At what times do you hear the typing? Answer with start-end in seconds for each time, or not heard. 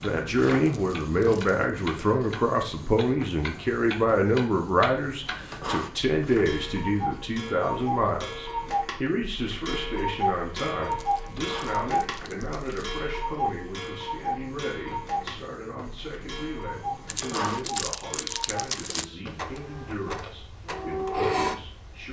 not heard.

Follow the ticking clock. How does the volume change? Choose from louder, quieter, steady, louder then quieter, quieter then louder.
louder then quieter.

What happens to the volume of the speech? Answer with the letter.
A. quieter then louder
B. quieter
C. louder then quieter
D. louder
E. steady
B.